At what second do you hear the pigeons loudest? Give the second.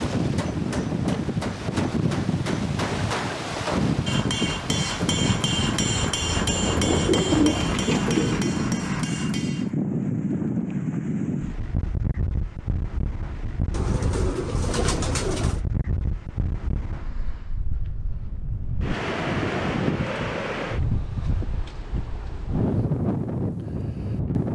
7 s.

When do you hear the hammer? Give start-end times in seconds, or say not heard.
0.1-9.8.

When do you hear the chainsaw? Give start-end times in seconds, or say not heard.
not heard.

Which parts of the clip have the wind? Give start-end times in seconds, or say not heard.
0.0-24.4.